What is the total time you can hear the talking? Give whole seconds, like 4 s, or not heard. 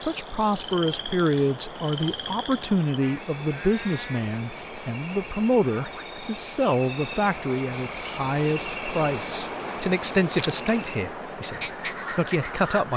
13 s.